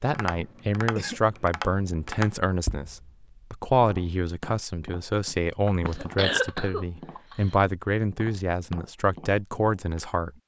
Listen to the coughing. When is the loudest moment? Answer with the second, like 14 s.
6 s.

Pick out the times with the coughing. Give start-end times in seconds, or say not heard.
0.3-1.2, 5.7-7.3.